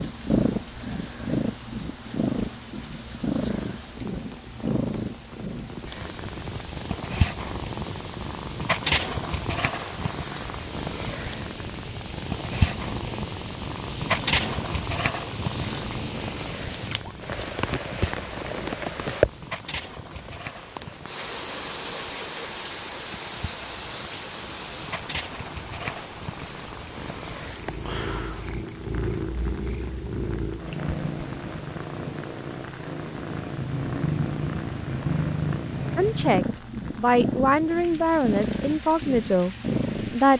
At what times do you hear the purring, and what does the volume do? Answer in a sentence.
You can hear the purring from 0.0 to 40.3 s, getting quieter then louder.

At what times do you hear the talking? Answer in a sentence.
You can hear the talking from 36.0 to 40.3 s.